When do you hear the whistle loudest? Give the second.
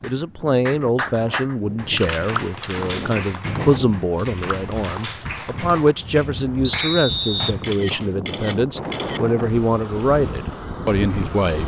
7 s.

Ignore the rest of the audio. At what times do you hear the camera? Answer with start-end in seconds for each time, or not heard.
1.9-2.8, 7.6-9.2.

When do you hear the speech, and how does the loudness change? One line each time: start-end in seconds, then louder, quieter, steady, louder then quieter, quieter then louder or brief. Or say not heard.
0.0-11.6 steady.